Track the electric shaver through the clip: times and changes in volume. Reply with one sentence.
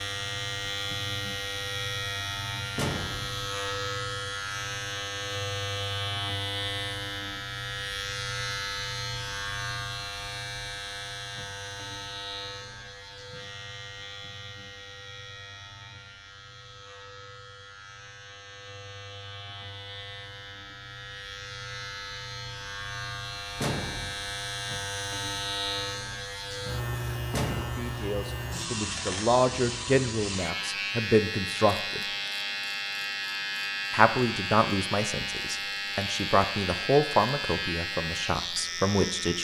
The electric shaver can be heard from 0.0 to 39.4 s, getting quieter then louder.